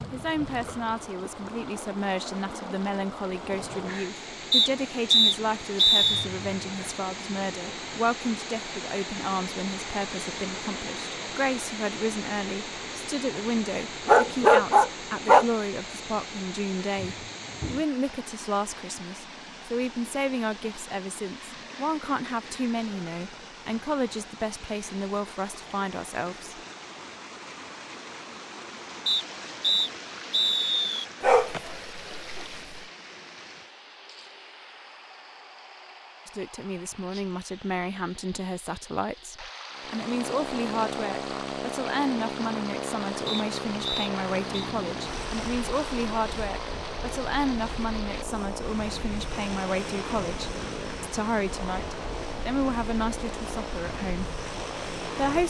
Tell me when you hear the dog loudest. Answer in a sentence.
The loudest moment of the dog is at 15 seconds.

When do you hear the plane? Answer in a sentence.
The plane can be heard from 39.7 to 55.4 s.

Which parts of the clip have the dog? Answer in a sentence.
The dog can be heard from 14.1 to 15.4 s and from 31.2 to 32.5 s.